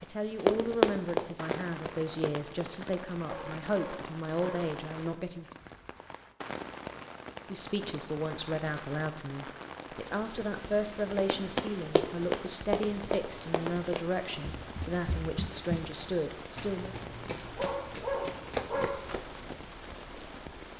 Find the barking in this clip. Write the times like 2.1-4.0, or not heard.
3.2-4.7, 17.6-19.0.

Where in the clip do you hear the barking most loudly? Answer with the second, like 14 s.
18 s.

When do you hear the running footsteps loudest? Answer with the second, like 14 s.
1 s.